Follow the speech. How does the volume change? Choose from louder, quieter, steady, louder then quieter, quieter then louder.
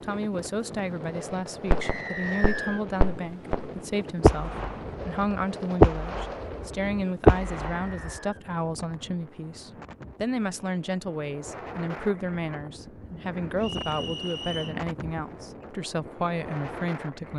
steady.